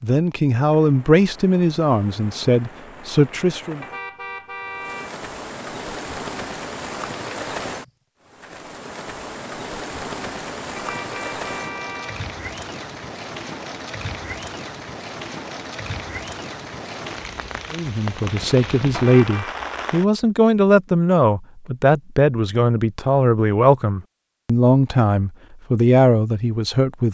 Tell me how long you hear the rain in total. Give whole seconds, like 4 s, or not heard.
20 s.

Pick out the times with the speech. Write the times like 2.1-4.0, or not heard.
0.0-3.8, 17.7-27.0.